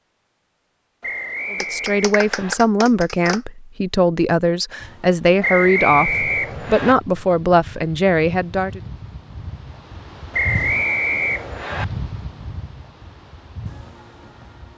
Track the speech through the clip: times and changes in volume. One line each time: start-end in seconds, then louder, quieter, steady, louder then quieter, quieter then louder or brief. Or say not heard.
1.5-8.8 steady.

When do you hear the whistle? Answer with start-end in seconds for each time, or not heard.
1.0-2.5, 5.4-7.0, 10.3-11.8.